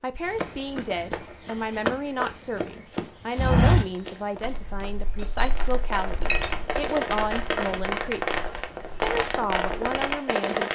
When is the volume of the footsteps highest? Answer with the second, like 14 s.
4 s.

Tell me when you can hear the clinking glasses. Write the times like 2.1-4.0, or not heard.
4.4-6.7.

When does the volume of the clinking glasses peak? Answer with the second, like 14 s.
6 s.